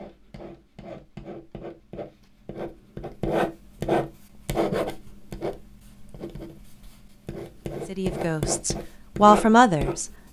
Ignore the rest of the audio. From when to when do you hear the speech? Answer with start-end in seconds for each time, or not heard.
7.9-10.1.